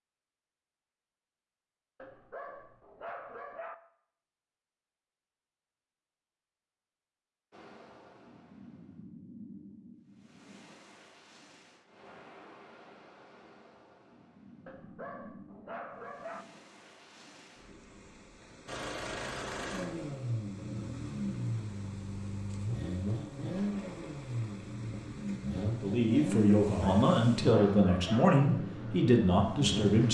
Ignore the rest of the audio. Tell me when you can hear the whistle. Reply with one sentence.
You can't hear the whistle here.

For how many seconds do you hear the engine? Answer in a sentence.
The engine can be heard for 11 seconds in total.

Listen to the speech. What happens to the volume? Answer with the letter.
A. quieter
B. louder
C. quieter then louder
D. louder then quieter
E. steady
E.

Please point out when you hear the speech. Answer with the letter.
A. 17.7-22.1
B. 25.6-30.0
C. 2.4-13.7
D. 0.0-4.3
B.